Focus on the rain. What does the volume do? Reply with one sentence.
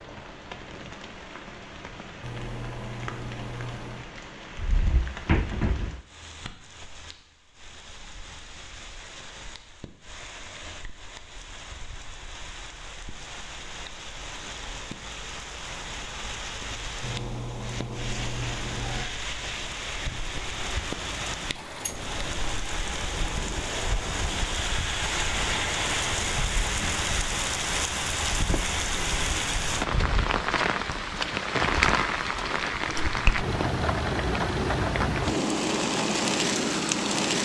The volume of the rain goes up.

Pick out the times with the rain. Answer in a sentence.
You can hear the rain from 0.0 to 37.3 s.